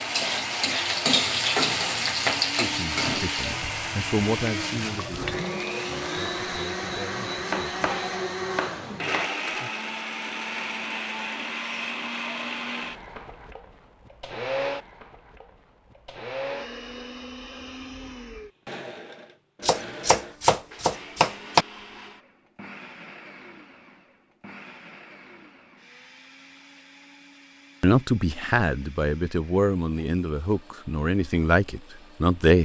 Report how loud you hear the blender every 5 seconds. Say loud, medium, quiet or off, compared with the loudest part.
loud, loud, loud, medium, quiet, quiet, quiet.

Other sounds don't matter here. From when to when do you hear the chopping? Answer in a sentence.
You can hear the chopping from 7.3 to 9.3 s and from 19.6 to 21.6 s.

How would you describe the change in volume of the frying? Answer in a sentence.
The volume of the frying goes down.